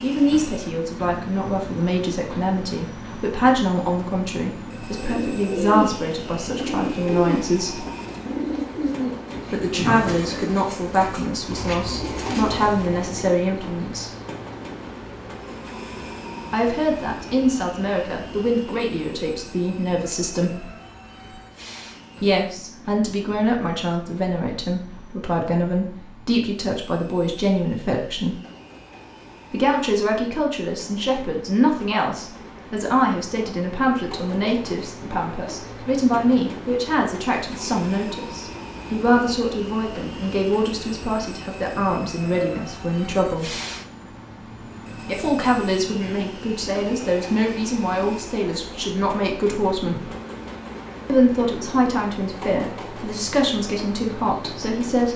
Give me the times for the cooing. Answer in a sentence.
You can hear the cooing from 4.8 to 13.3 s.